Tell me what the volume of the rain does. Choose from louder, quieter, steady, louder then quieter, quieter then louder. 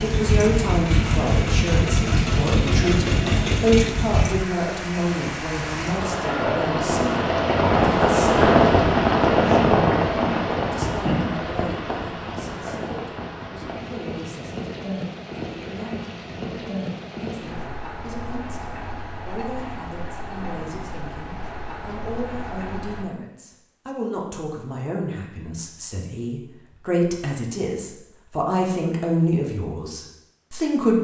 louder then quieter.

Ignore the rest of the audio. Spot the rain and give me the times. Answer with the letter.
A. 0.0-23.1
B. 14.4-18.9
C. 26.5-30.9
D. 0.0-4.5
A.